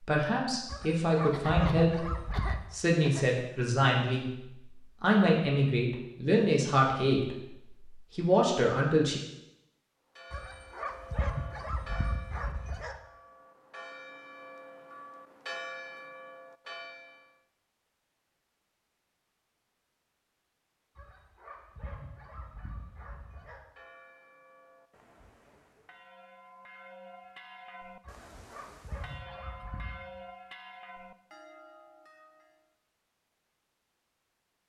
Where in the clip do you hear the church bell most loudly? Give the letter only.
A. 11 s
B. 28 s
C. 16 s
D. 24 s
C.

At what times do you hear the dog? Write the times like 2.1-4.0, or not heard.
0.7-2.8, 10.3-13.0, 20.9-23.6, 28.1-30.1.